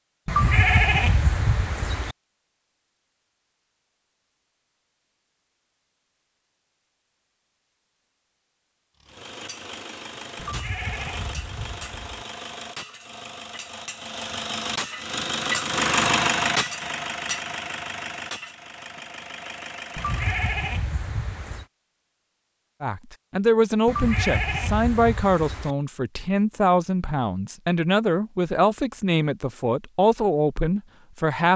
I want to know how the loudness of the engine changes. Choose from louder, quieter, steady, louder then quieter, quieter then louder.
louder then quieter.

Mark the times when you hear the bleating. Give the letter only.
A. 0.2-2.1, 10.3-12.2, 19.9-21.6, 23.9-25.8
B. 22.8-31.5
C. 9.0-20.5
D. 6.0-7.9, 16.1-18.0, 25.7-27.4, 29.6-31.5
A.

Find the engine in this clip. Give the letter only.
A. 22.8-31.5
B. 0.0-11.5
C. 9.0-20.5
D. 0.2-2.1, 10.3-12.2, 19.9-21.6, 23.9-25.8
C.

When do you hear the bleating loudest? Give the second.
1 s.